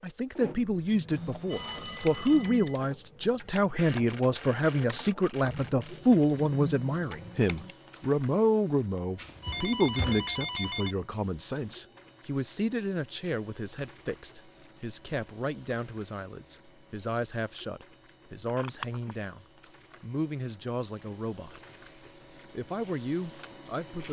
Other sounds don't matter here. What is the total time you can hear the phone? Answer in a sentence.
You can hear the phone for 4 seconds altogether.